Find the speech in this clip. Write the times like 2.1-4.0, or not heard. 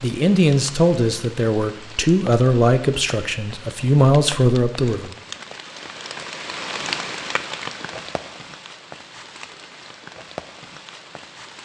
0.0-5.1.